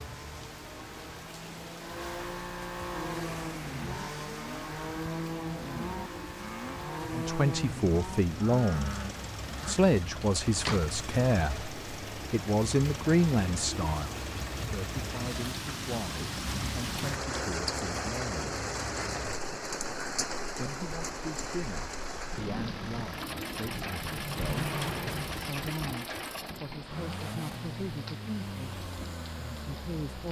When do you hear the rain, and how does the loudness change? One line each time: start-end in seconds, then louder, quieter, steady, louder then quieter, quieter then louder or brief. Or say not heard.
0.0-30.2 louder then quieter.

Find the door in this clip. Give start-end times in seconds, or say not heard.
10.2-10.8, 24.0-25.6.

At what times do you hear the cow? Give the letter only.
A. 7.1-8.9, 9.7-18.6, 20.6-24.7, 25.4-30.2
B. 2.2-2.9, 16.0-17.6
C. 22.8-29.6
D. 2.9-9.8
D.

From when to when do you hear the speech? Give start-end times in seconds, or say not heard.
7.1-8.9, 9.7-18.6, 20.6-24.7, 25.4-30.2.